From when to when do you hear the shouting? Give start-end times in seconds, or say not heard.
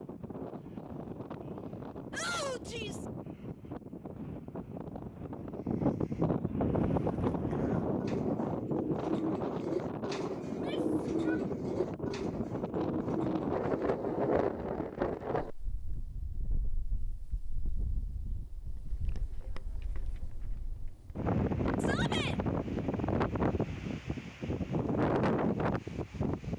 2.1-3.0, 10.4-11.4, 21.8-22.4.